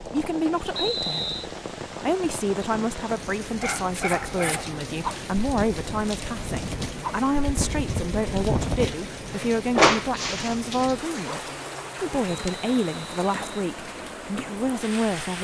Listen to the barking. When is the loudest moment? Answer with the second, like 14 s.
10 s.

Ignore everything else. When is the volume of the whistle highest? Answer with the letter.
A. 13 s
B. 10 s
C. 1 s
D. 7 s
C.